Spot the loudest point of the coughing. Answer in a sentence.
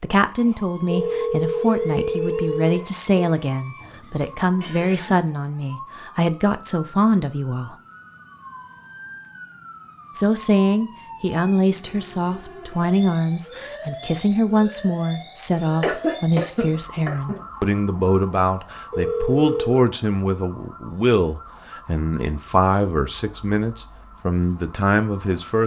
The volume of the coughing peaks at 16 seconds.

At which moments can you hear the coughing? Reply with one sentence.
The coughing can be heard from 3.8 to 5.3 s and from 15.8 to 17.4 s.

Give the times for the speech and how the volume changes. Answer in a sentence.
The speech can be heard from 0.0 to 7.8 s, at a steady volume; and from 10.2 to 25.6 s, at a steady volume.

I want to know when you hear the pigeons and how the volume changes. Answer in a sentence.
You can't hear the pigeons here.